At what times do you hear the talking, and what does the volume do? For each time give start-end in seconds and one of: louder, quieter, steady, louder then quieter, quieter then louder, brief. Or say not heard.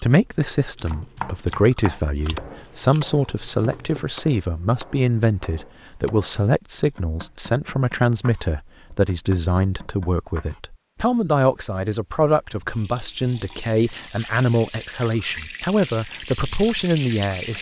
0.0-17.5 steady.